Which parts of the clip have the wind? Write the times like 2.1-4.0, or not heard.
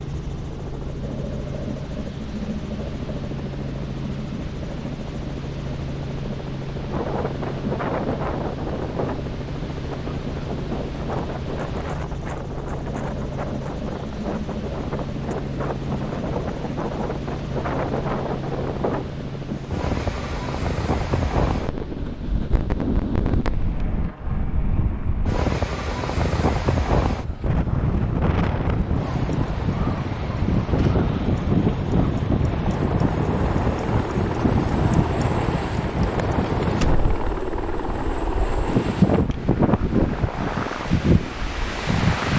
6.8-42.3.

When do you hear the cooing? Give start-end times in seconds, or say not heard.
not heard.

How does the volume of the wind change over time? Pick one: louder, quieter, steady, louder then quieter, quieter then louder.
louder.